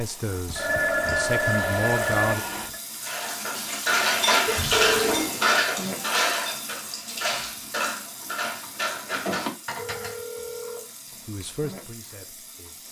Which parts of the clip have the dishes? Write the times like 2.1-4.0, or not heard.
3.0-10.2.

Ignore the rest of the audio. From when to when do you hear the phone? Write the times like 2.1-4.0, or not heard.
0.5-2.8, 4.5-5.2, 9.8-11.3.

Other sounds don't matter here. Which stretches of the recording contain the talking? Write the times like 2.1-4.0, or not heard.
0.0-2.4, 11.1-12.8.